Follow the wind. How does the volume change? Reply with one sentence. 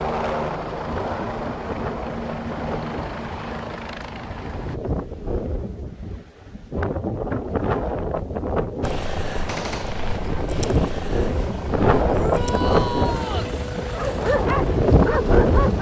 The volume of the wind goes up.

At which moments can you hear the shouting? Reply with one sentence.
You can hear the shouting from 12.1 to 13.5 s.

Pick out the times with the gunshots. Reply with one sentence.
The gunshots can be heard from 9.4 to 10.2 s.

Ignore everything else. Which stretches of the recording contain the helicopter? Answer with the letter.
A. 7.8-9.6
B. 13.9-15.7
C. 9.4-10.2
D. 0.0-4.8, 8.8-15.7
D.